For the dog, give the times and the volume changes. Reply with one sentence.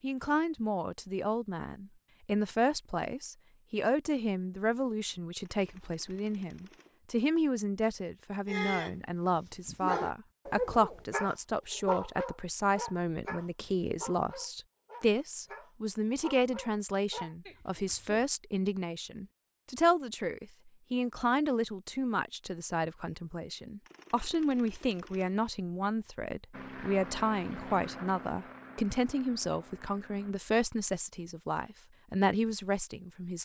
You can hear the dog briefly from 8.4 to 8.9 s; and from 9.7 to 18.2 s, getting quieter.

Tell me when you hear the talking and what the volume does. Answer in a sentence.
You can hear the talking from 0.0 to 33.3 s, at a steady volume.